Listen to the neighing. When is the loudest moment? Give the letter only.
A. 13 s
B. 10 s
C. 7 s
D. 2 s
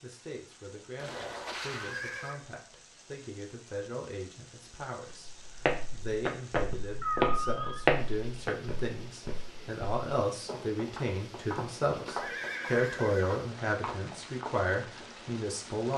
C.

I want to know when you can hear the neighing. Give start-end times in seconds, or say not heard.
0.9-2.4, 7.0-7.8, 12.1-13.3.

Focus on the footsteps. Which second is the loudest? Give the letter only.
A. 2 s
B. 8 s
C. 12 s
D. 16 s
B.